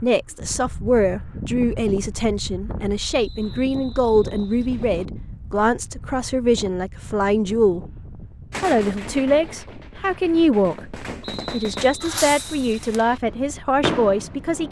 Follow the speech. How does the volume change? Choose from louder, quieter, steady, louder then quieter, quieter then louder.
steady.